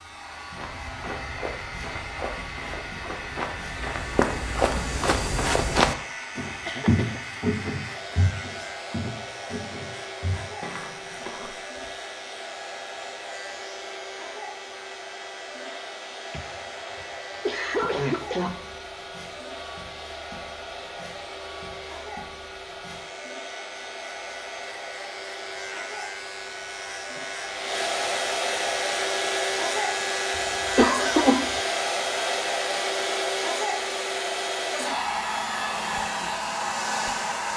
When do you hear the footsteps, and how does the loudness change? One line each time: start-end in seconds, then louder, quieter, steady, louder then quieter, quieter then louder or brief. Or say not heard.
0.5-11.9 louder then quieter.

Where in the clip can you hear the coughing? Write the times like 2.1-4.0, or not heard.
6.2-7.2, 16.3-18.9, 30.8-31.5.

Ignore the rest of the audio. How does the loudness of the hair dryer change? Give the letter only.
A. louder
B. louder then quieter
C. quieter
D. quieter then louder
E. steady
A.